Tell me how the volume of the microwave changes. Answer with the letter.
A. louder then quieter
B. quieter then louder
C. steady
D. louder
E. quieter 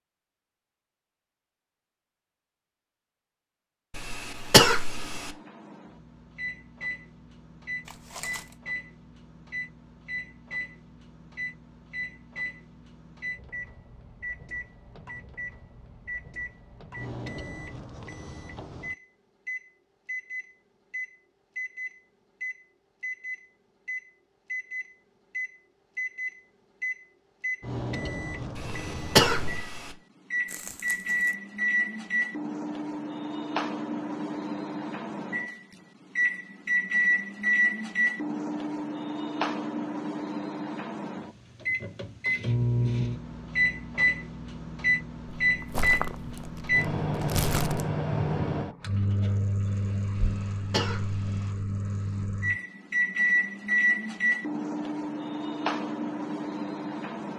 D.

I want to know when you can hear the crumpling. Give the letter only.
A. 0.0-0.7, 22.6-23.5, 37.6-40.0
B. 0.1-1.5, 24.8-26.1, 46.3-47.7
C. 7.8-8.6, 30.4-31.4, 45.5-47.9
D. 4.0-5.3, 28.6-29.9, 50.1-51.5
C.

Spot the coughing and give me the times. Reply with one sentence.
The coughing can be heard from 4.0 to 5.3 s, from 28.6 to 29.9 s and from 50.1 to 51.5 s.